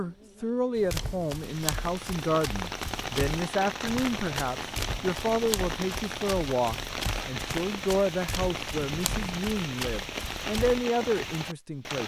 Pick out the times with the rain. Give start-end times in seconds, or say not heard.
0.0-12.0.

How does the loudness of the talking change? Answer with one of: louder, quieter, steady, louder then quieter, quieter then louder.
steady.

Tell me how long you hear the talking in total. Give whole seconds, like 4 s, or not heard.
12 s.